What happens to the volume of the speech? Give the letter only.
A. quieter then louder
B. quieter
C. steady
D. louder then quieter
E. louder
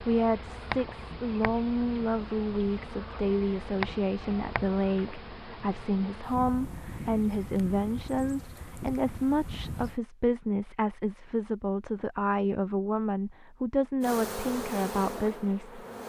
C.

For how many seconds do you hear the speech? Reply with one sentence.
You can hear the speech for 16 seconds altogether.